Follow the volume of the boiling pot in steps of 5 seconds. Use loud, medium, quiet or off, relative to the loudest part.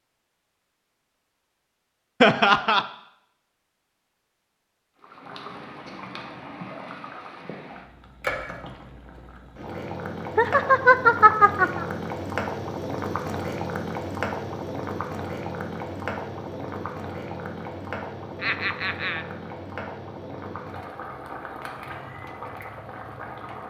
off, medium, loud, loud, medium.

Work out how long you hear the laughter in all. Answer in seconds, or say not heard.
3 s.